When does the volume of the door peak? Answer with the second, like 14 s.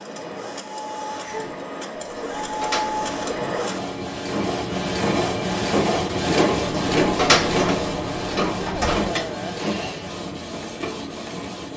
7 s.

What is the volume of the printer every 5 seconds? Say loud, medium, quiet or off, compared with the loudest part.
medium, loud, medium.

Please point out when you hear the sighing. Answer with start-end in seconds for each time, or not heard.
1.2-1.6, 8.6-9.6.